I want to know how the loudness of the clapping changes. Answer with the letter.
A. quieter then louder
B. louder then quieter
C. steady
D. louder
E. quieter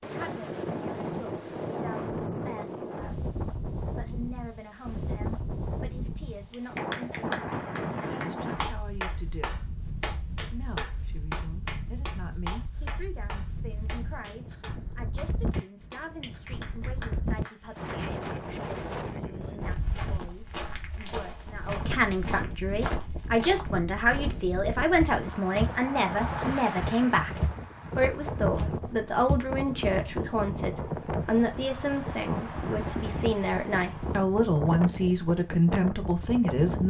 E.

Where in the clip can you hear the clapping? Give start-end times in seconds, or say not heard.
6.5-18.1.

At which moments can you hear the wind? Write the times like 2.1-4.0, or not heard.
0.0-36.8.